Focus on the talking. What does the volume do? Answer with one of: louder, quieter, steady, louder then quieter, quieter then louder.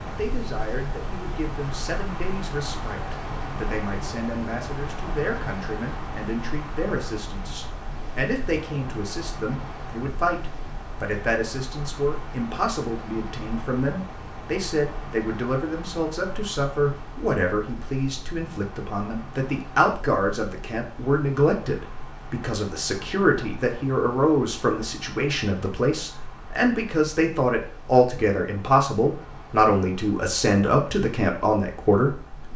louder.